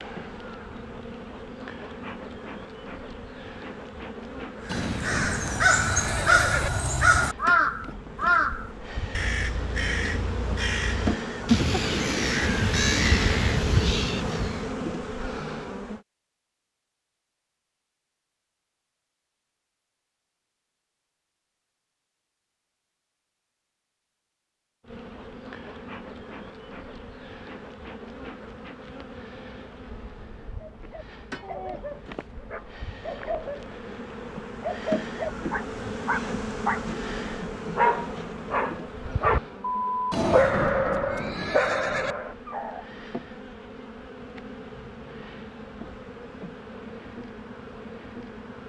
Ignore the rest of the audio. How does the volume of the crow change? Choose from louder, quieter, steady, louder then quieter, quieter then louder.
quieter then louder.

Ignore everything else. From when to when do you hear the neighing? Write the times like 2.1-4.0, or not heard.
4.7-6.7, 40.1-42.1.